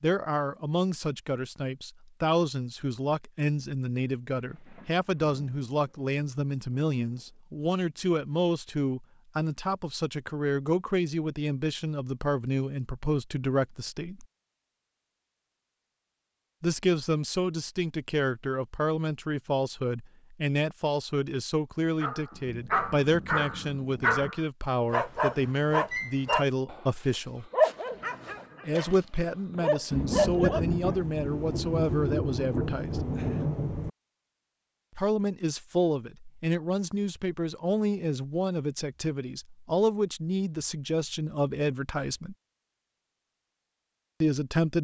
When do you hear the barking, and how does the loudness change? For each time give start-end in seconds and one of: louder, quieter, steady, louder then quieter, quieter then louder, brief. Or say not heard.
22.0-31.0 steady.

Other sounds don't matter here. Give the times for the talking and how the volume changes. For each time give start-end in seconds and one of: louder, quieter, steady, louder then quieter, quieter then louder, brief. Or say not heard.
0.0-14.2 steady
16.6-27.5 steady
28.6-33.0 steady
35.0-42.4 steady
44.2-44.7 brief.